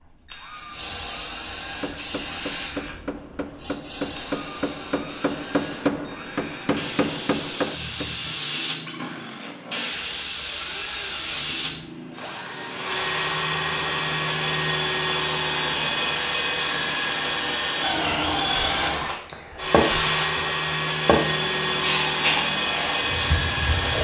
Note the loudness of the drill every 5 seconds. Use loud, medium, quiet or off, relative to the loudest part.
quiet, quiet, loud, loud, loud.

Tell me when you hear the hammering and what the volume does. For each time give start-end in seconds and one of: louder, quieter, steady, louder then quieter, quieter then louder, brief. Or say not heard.
1.6-8.1 louder.